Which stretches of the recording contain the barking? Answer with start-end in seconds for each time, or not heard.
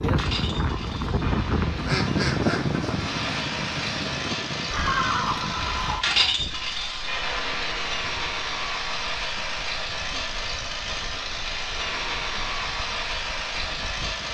not heard.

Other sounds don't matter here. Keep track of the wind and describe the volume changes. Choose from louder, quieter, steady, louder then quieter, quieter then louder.
quieter.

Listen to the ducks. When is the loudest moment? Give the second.
2 s.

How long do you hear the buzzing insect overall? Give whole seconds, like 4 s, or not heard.
not heard.